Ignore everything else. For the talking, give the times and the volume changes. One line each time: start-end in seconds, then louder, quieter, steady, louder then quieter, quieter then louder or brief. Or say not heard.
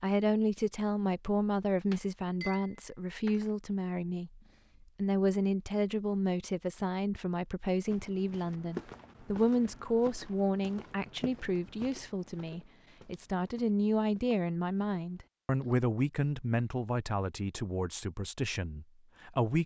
0.0-19.6 steady.